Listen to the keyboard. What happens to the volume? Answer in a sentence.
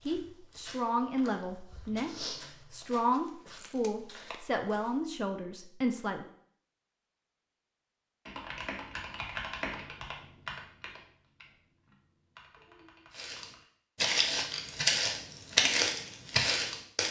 The loudness of the keyboard goes down, then up.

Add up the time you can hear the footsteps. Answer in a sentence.
You can hear the footsteps for 9 seconds altogether.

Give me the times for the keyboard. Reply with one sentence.
The keyboard can be heard from 8.2 to 13.7 s.